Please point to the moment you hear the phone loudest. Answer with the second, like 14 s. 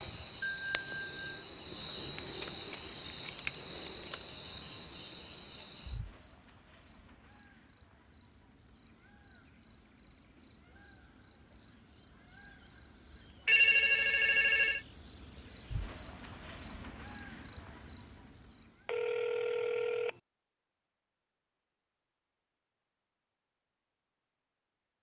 14 s.